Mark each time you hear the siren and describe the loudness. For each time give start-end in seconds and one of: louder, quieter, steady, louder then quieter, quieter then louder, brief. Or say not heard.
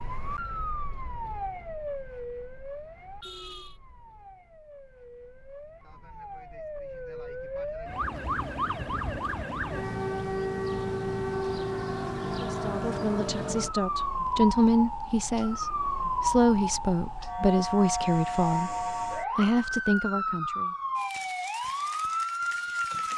0.0-23.1 louder.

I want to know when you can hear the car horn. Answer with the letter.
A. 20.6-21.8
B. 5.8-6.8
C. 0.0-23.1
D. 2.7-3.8
D.